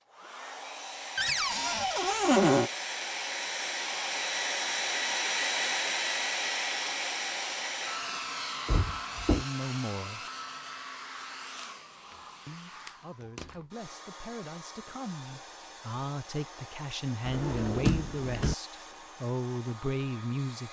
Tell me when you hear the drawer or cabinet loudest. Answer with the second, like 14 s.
2 s.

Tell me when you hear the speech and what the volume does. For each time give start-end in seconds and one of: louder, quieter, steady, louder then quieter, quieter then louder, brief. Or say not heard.
9.2-10.2 brief
12.4-20.6 louder.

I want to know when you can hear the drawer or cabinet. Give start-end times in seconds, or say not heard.
1.1-2.7, 8.7-9.4, 17.2-18.6.